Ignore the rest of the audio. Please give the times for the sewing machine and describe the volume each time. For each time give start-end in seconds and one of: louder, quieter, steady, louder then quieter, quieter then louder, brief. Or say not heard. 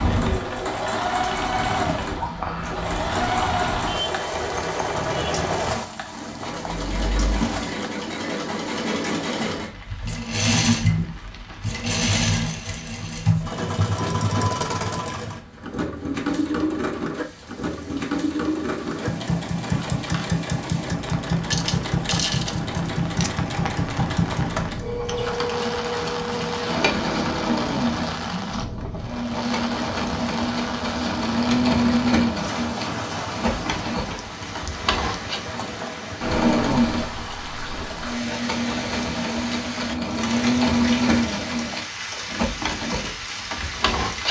0.0-44.2 steady.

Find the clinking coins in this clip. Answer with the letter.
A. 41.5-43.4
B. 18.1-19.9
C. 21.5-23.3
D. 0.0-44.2
C.